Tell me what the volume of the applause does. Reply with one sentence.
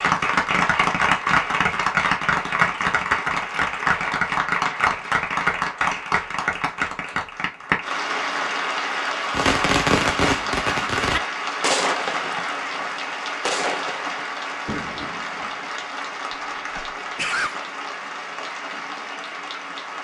The volume of the applause goes down.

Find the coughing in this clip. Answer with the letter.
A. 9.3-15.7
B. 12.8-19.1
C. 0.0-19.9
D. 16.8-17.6
D.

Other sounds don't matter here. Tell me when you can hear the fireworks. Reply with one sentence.
You can hear the fireworks from 9.3 to 15.7 s.